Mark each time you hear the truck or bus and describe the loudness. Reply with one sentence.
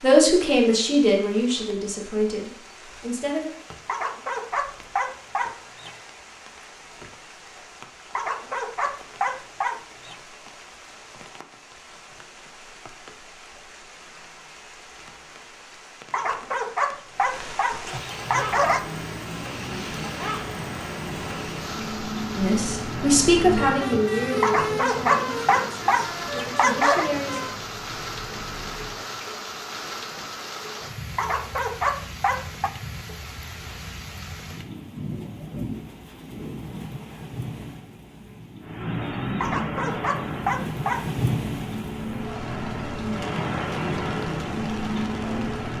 You can hear the truck or bus from 18.1 to 29.1 s, getting louder then quieter; and from 38.6 to 45.7 s, getting quieter then louder.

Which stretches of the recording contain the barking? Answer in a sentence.
You can hear the barking from 3.9 to 6.0 s, from 8.2 to 10.2 s, from 16.1 to 18.9 s, from 24.4 to 27.1 s, from 31.1 to 32.7 s and from 39.4 to 41.1 s.